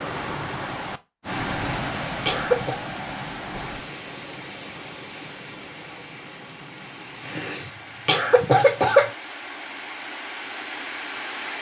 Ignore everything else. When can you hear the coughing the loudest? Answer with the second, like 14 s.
9 s.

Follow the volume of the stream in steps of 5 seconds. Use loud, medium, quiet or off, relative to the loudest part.
loud, medium, loud.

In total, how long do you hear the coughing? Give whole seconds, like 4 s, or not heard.
3 s.